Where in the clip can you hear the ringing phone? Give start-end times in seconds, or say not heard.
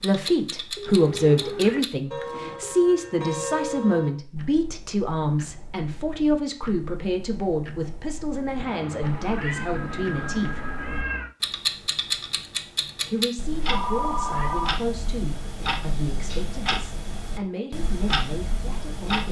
0.8-2.7, 9.8-11.1, 13.7-14.8.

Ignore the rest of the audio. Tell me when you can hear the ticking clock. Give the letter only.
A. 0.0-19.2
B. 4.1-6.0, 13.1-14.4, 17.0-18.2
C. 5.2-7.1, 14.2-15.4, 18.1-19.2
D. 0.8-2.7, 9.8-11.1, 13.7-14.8
A.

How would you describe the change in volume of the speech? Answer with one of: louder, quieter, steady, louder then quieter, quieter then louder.
quieter.